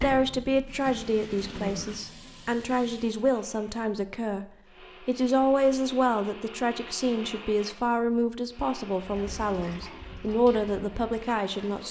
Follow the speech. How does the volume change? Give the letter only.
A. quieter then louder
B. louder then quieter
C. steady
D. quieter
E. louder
C.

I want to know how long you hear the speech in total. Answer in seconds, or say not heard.
12 s.